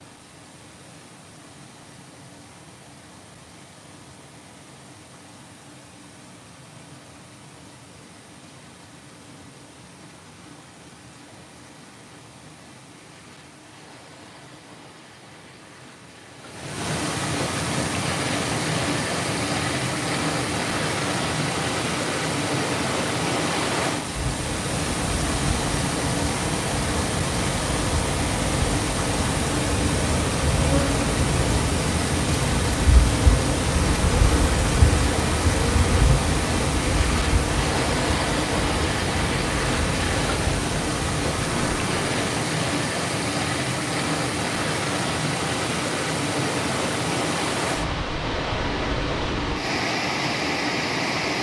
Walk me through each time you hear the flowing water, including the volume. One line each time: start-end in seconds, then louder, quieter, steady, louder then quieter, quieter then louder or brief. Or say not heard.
0.0-51.3 louder.